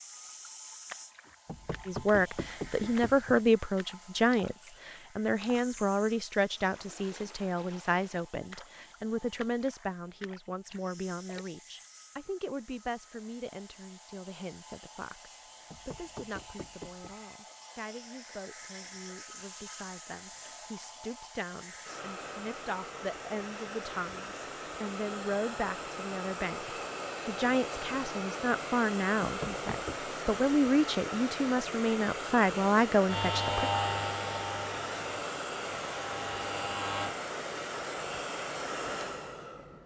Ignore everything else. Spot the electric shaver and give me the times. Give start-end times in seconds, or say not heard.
33.0-37.1.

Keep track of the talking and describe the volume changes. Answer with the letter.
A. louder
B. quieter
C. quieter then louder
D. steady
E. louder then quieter
C.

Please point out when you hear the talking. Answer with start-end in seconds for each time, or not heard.
1.9-33.7.